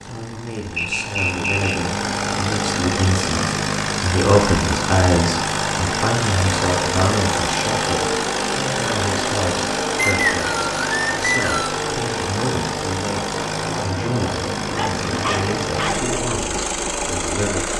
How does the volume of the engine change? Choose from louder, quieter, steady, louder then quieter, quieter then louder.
steady.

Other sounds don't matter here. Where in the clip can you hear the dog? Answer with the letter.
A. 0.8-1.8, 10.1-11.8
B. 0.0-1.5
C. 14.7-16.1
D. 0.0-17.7
C.